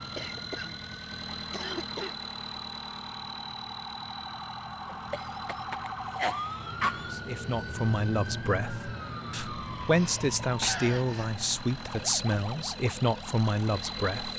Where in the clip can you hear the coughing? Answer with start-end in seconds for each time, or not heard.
0.1-2.1, 5.1-7.1, 9.8-11.3.